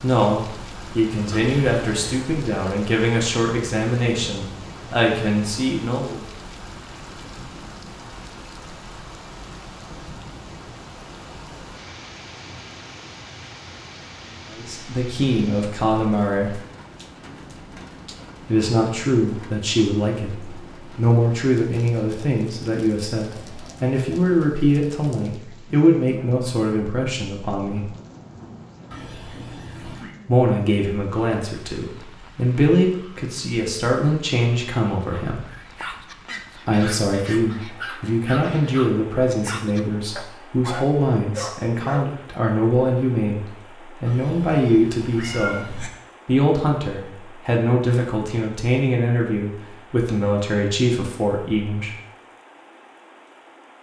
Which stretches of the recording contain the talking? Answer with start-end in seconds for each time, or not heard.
0.0-6.2, 14.5-16.6, 18.4-27.9, 30.2-35.4, 36.6-45.6, 46.2-52.0.